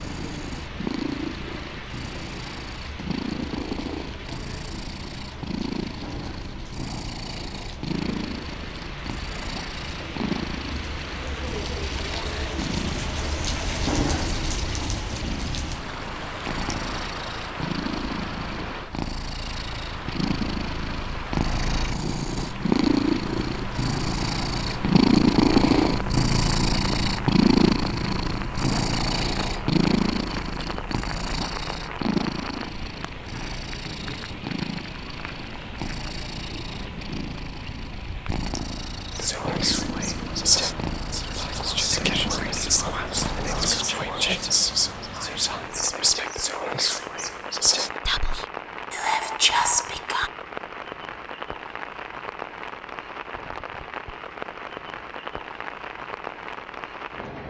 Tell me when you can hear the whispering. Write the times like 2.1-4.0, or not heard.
39.1-50.3.